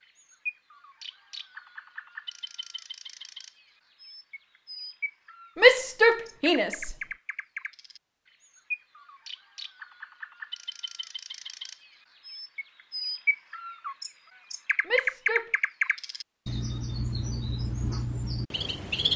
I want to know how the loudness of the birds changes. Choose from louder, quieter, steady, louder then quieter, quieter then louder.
louder.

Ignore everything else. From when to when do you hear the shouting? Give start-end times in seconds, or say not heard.
5.5-7.0, 14.8-15.5.